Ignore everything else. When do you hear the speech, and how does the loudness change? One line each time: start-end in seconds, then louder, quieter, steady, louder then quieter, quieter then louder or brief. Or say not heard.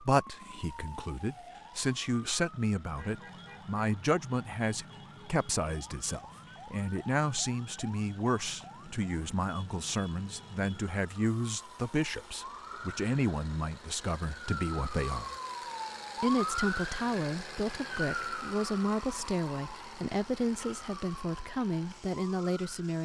0.0-15.3 steady
16.2-23.0 steady.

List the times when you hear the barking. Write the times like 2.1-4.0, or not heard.
not heard.